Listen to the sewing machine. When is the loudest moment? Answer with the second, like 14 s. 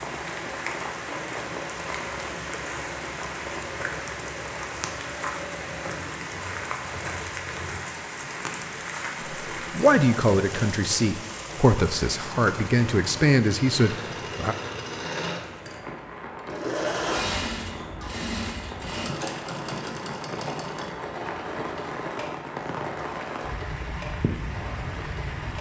17 s.